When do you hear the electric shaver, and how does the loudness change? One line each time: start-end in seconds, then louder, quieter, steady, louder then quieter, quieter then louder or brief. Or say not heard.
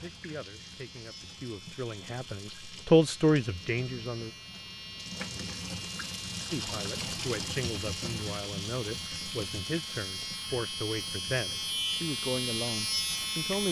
0.0-13.6 louder.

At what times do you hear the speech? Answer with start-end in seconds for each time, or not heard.
0.0-4.3, 6.5-13.6.